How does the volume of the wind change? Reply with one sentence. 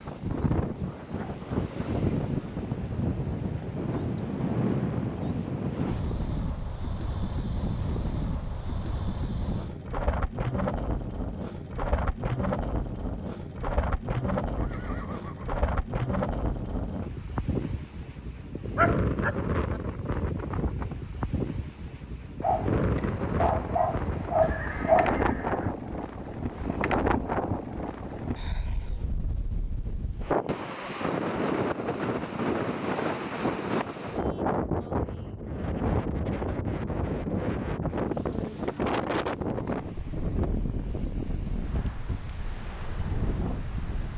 The loudness of the wind stays about the same.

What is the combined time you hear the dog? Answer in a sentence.
You can hear the dog for 4 seconds altogether.